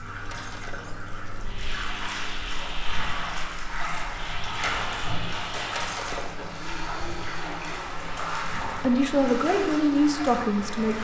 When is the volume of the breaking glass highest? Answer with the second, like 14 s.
6 s.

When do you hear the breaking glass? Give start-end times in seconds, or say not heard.
0.2-1.0, 5.7-6.3.